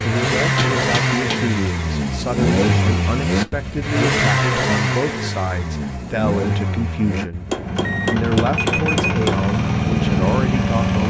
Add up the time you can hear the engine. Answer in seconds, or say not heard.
11 s.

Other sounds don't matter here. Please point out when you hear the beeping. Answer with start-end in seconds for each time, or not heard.
7.8-9.2.